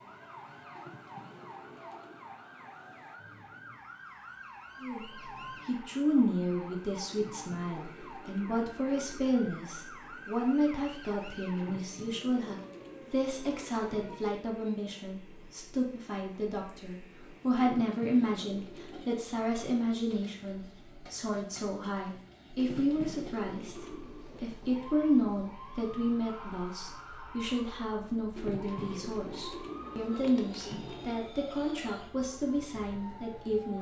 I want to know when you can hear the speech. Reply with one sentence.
You can hear the speech from 4.8 to 33.7 s.